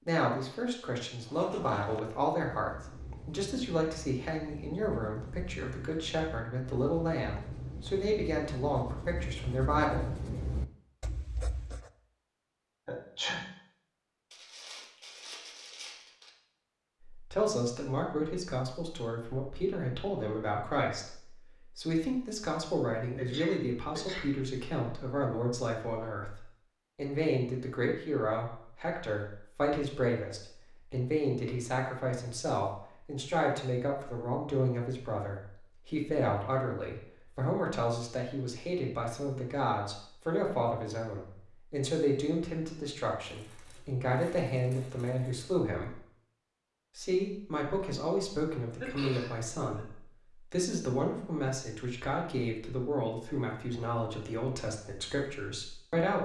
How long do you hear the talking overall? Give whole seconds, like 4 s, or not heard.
48 s.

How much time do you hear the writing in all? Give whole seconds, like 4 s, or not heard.
11 s.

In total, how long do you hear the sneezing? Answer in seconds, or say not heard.
3 s.